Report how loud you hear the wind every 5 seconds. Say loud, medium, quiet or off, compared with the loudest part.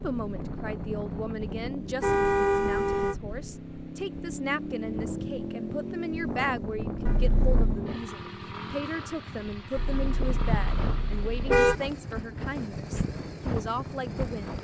medium, loud, loud.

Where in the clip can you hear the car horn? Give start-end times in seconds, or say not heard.
2.0-3.1, 7.0-7.8, 9.8-11.8.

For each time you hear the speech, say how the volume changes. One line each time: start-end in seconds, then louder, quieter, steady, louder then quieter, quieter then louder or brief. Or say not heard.
0.0-14.5 steady.